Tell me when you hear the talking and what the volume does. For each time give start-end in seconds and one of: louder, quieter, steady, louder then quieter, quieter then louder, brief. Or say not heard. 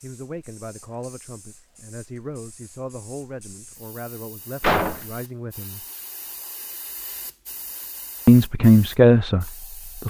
0.0-5.8 steady
8.2-10.0 brief.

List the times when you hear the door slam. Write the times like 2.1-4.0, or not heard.
4.6-5.2.